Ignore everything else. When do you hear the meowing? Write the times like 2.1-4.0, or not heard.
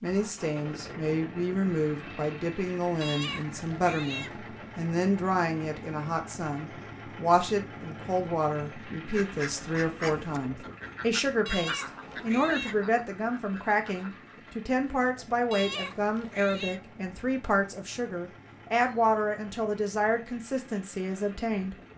3.0-4.4, 11.4-12.8, 15.5-16.8.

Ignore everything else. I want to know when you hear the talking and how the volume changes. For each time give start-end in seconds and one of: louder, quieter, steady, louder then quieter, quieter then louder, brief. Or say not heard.
0.0-21.8 steady.